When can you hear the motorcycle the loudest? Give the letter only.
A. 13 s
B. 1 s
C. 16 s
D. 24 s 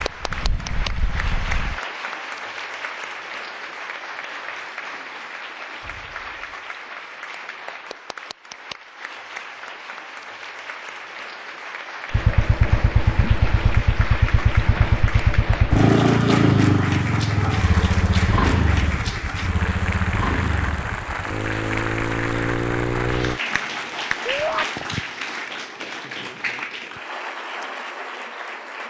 C.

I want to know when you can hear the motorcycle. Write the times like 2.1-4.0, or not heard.
0.0-1.8, 12.1-23.4.